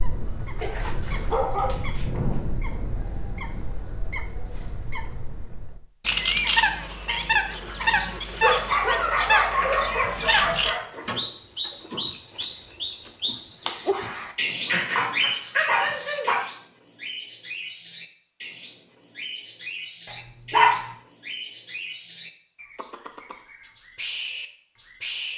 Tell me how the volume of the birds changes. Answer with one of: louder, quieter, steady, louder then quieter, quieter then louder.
louder then quieter.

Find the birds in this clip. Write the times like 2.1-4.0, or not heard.
0.0-25.3.